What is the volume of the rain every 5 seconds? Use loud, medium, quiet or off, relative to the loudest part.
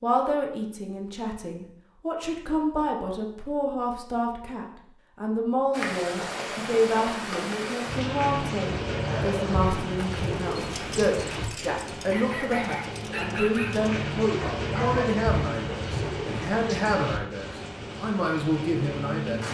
off, loud, loud, loud.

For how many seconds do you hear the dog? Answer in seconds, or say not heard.
6 s.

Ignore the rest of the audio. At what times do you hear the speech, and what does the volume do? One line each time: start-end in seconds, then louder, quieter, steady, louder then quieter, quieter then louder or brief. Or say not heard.
0.0-19.4 steady.